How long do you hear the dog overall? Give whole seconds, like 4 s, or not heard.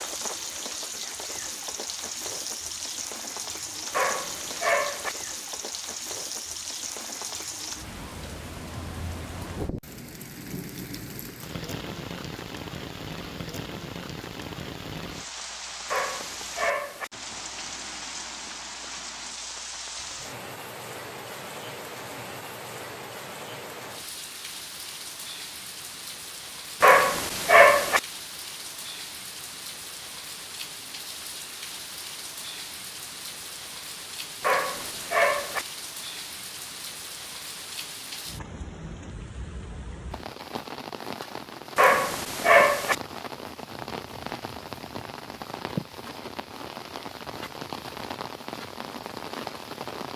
6 s.